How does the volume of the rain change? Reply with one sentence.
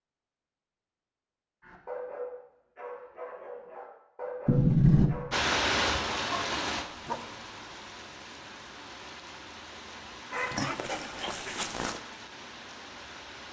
The volume of the rain goes down.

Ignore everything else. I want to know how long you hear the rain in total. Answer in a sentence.
You can hear the rain for 8 seconds altogether.